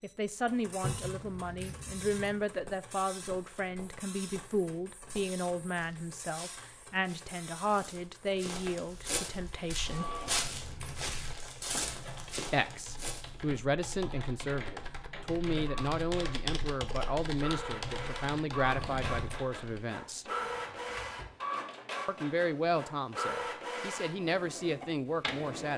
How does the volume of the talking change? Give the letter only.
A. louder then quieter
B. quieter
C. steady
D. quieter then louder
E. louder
C.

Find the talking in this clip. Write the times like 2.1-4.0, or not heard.
0.0-10.1, 12.5-20.3, 22.1-25.7.